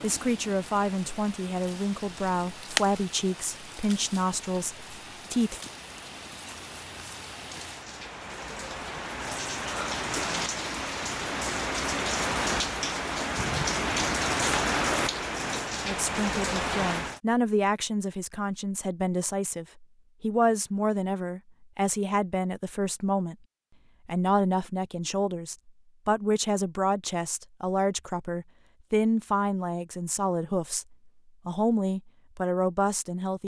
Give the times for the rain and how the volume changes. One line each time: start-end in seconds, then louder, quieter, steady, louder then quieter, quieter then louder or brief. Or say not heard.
0.0-17.2 quieter then louder.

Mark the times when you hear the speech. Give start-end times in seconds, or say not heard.
0.0-5.6, 15.8-23.4, 24.1-33.4.